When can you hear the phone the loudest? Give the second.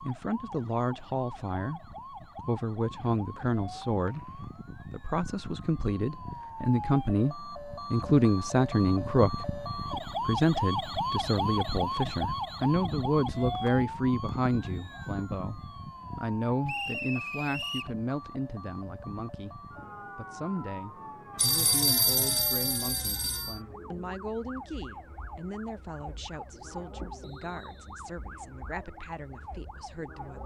22 s.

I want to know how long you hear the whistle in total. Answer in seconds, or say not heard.
3 s.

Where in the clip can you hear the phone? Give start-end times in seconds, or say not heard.
21.4-23.6.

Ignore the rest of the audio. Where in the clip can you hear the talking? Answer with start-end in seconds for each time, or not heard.
0.0-30.4.